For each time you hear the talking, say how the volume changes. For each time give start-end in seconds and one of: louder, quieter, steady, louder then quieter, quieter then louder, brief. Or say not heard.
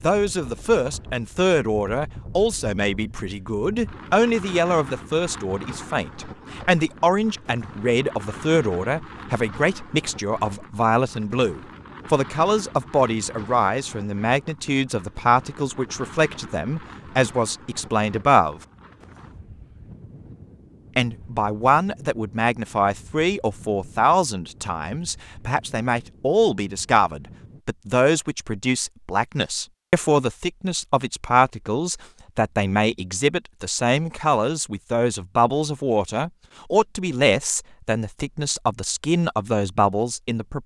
0.0-18.6 steady
20.9-40.6 steady.